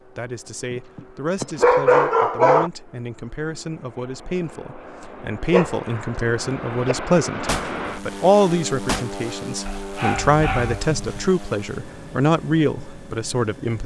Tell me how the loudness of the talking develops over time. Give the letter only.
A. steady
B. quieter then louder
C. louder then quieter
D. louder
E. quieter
D.